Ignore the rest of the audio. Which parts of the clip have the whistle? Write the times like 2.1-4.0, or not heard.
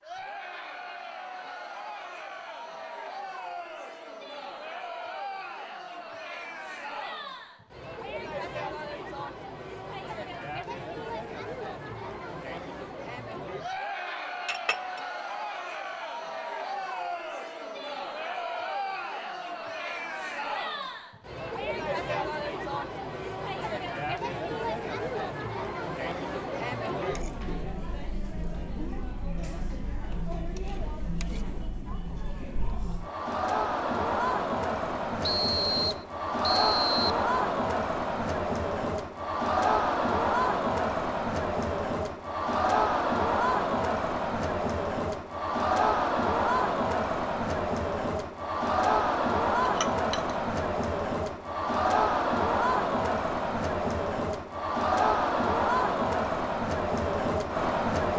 35.2-37.2.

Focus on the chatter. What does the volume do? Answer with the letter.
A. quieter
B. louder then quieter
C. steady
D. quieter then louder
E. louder
E.